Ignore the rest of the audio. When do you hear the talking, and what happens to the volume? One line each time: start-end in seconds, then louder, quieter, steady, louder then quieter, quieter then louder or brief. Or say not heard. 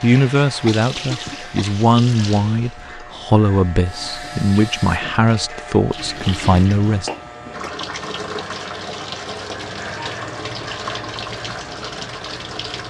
0.0-7.1 steady.